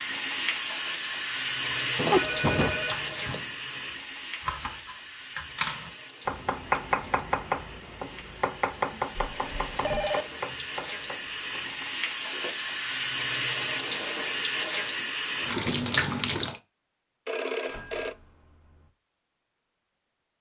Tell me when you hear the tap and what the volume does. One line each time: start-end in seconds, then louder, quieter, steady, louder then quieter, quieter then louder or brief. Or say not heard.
0.0-16.6 quieter then louder.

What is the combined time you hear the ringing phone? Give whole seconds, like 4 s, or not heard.
3 s.